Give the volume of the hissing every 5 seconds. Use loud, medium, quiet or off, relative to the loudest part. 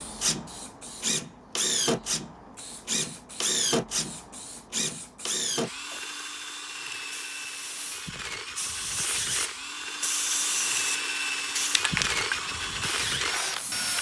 quiet, medium, loud.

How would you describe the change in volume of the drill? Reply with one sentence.
The loudness of the drill goes down, then up.